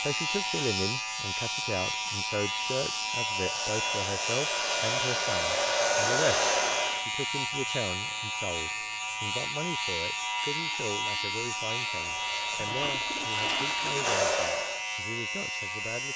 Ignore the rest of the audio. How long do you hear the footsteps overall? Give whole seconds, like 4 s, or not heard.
not heard.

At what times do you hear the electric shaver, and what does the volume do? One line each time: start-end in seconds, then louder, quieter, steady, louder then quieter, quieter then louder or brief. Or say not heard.
0.0-16.1 steady.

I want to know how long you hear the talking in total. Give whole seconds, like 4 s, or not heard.
16 s.